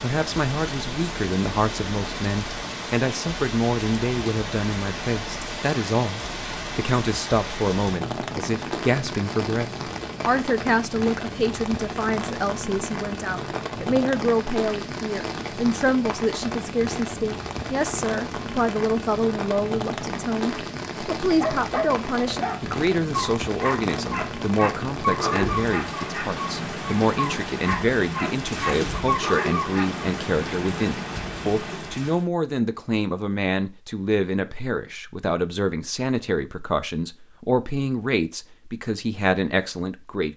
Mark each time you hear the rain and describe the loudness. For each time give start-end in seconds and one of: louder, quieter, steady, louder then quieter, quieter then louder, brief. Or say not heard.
0.0-32.2 steady.